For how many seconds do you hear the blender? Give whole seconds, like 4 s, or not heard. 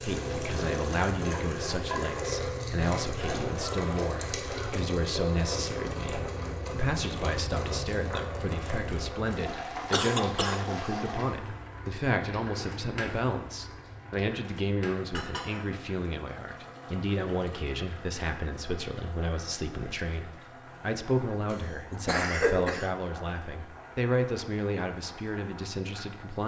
not heard.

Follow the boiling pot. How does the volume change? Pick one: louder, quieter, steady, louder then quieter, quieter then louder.
quieter.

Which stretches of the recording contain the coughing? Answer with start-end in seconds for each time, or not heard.
3.1-4.8, 9.9-10.8, 21.5-22.9.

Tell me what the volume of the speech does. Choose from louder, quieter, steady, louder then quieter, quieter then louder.
steady.